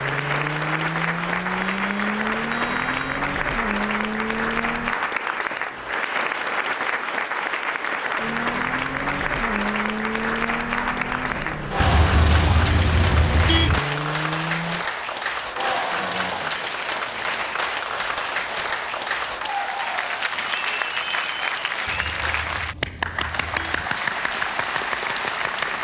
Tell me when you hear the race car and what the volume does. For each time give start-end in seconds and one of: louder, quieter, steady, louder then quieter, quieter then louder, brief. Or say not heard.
0.0-5.0 steady
8.2-14.8 steady.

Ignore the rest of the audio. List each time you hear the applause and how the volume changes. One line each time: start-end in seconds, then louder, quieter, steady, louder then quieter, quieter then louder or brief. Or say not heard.
0.0-25.7 steady.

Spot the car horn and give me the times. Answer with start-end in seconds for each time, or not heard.
1.6-3.2, 11.8-13.8, 21.9-23.9.